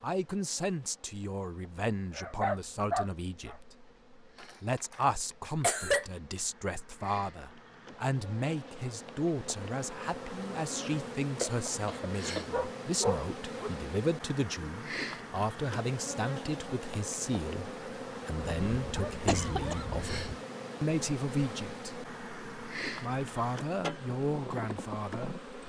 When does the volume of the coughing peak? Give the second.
6 s.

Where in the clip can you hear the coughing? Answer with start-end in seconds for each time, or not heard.
4.4-6.0, 11.4-12.4, 19.2-19.9.